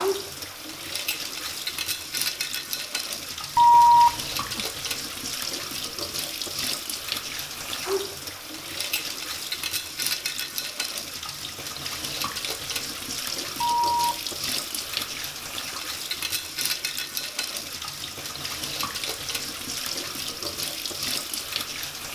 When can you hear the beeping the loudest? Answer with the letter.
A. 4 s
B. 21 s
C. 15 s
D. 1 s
A.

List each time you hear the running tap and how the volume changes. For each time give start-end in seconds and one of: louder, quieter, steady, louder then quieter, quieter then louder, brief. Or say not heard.
0.0-22.1 steady.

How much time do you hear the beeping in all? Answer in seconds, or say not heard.
2 s.